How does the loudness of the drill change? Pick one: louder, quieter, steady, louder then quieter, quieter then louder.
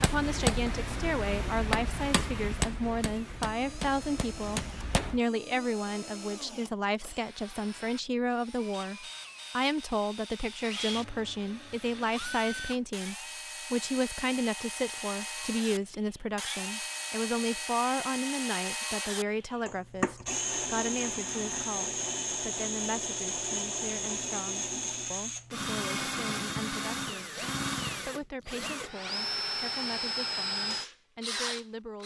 louder.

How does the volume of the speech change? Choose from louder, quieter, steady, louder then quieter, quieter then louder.
quieter.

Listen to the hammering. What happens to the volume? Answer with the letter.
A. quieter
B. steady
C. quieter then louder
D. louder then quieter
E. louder
A.